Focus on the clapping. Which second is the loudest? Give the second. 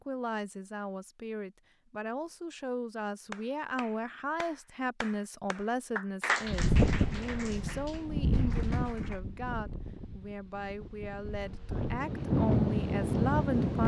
6 s.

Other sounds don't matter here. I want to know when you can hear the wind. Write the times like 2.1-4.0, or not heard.
6.5-13.8.